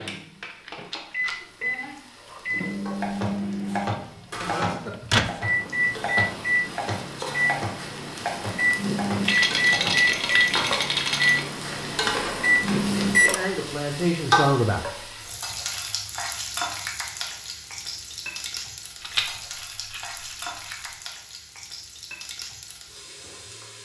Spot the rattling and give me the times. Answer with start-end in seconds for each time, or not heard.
0.7-1.4, 9.2-11.4, 19.0-20.9.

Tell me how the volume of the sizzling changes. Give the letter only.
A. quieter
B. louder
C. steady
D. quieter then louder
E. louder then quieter
E.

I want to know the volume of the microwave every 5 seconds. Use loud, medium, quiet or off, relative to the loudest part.
medium, loud, loud, off, off.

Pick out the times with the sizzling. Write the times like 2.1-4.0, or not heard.
0.0-23.8.